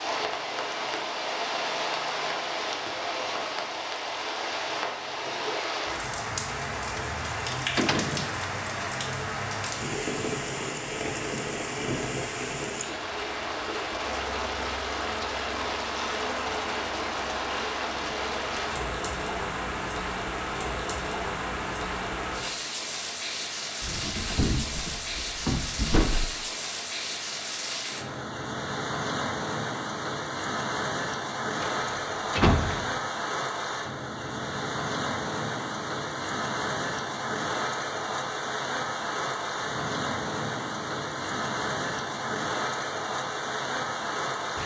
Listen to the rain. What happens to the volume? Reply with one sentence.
The loudness of the rain stays about the same.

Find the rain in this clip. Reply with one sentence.
The rain can be heard from 0.0 to 44.6 s.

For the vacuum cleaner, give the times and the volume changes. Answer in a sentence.
The vacuum cleaner can't be heard in this clip.